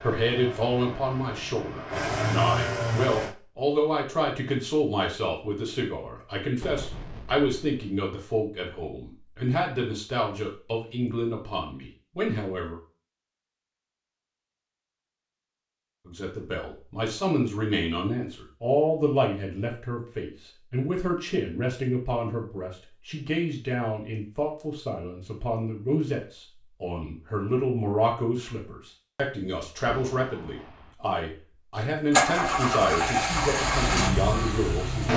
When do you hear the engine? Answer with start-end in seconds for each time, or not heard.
0.0-3.4, 32.1-35.1.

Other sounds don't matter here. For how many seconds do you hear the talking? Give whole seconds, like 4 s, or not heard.
32 s.